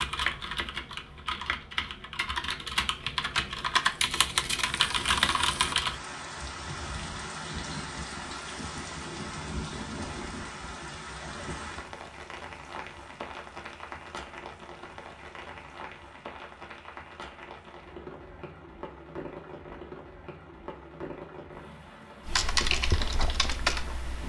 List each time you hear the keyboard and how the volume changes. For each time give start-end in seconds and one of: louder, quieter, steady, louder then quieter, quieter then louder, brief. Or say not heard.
0.0-6.0 louder
22.2-24.2 brief.